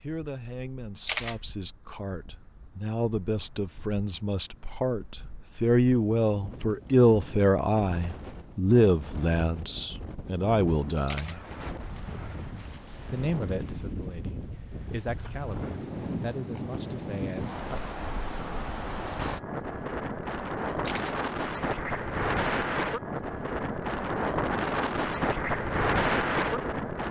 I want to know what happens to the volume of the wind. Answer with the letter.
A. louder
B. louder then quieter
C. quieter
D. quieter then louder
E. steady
A.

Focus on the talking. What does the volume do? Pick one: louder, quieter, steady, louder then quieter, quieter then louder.
louder then quieter.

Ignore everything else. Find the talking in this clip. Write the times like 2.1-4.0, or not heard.
0.0-11.4, 13.1-18.1.